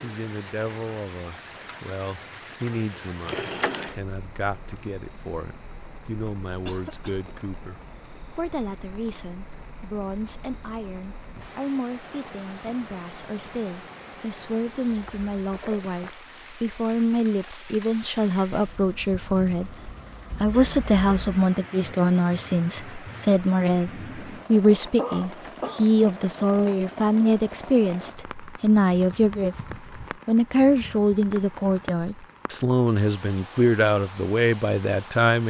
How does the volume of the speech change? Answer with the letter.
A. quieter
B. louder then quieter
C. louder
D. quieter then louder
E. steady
C.